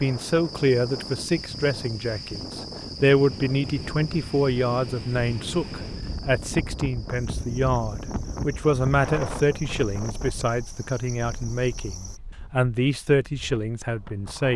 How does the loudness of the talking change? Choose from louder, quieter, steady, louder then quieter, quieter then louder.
steady.